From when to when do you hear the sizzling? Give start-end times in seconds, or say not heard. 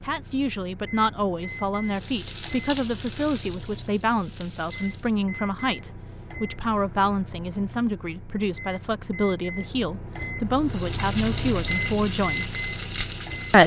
1.9-5.2, 10.7-13.6.